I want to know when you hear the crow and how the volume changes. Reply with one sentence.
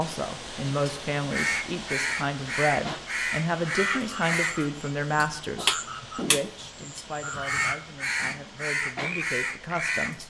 You can hear the crow from 0.7 to 10.2 s, at a steady volume.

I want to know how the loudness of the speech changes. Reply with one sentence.
The volume of the speech goes down.